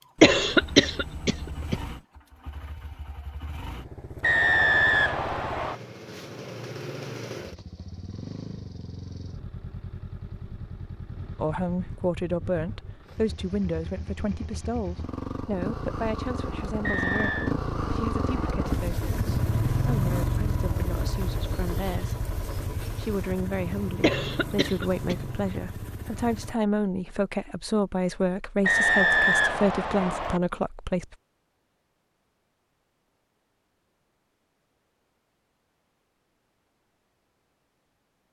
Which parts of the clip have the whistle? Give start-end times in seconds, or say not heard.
4.2-5.8, 16.8-17.6, 28.6-30.4.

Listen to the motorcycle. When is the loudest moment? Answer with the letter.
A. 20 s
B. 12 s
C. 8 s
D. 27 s
A.